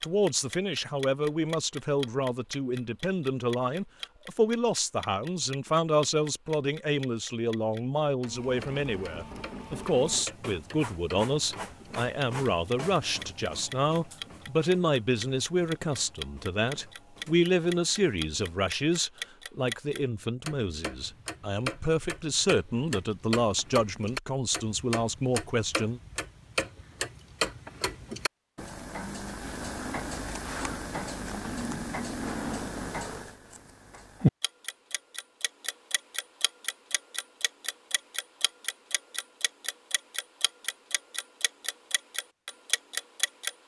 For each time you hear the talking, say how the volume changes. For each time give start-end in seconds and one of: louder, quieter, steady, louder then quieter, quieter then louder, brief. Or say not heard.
0.0-26.0 steady.